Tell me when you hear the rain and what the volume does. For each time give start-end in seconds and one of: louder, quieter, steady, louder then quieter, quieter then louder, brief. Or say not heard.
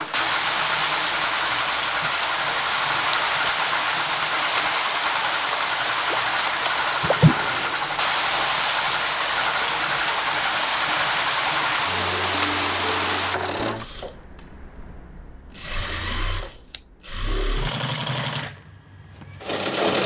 0.0-13.4 steady.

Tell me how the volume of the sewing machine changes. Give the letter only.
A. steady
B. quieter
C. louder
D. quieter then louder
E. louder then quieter
A.